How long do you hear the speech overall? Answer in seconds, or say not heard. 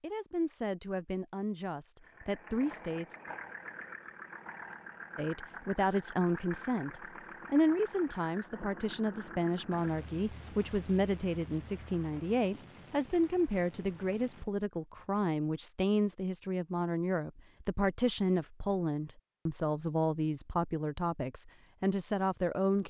21 s.